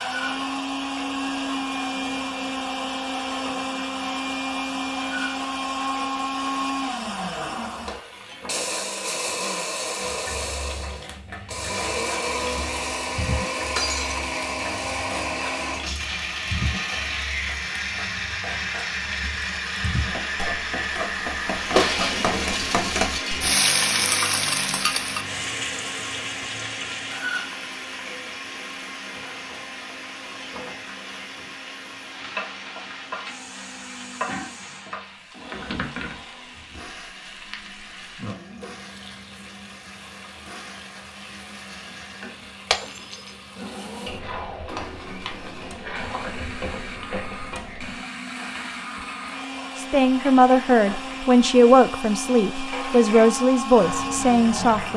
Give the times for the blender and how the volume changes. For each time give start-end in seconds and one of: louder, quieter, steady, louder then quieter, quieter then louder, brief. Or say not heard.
0.0-54.9 quieter then louder.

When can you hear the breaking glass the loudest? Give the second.
22 s.